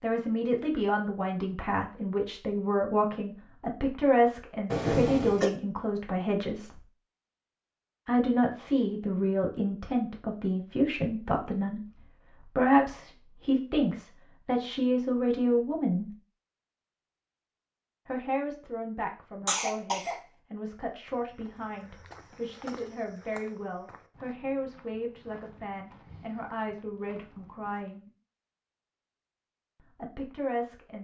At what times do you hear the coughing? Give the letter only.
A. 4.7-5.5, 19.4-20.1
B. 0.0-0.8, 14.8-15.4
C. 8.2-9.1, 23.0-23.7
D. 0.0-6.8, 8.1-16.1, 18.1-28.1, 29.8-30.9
A.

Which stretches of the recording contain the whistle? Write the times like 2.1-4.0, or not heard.
not heard.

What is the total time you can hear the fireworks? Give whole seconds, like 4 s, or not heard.
not heard.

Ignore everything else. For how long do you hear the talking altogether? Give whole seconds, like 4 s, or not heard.
26 s.